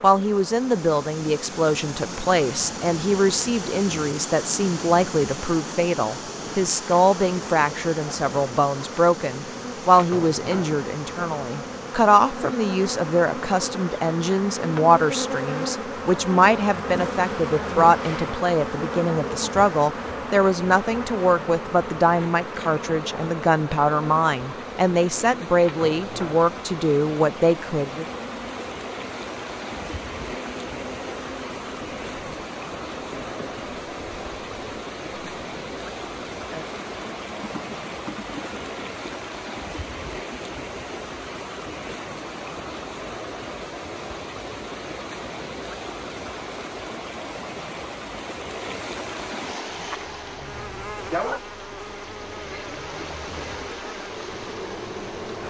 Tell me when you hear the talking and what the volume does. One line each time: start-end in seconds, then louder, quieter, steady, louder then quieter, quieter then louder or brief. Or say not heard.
0.0-28.1 steady.